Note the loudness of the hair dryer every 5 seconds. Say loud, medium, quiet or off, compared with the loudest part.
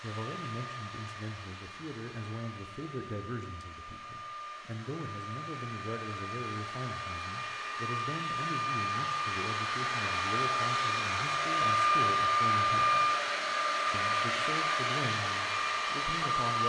quiet, medium, loud, loud.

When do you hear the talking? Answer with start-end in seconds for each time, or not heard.
0.0-13.2, 13.9-16.6.